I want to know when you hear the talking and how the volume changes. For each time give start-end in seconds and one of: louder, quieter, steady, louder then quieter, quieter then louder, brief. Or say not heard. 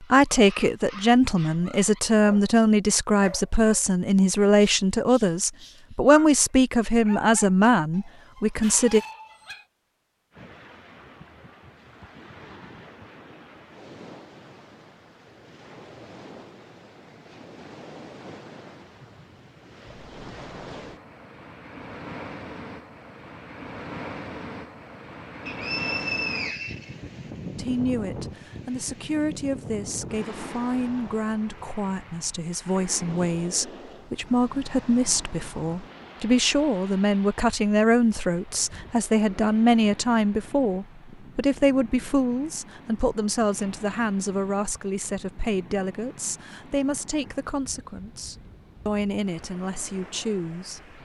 0.0-9.0 steady
27.6-51.0 louder then quieter.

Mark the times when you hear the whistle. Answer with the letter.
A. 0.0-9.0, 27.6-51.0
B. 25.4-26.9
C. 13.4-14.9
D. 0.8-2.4
B.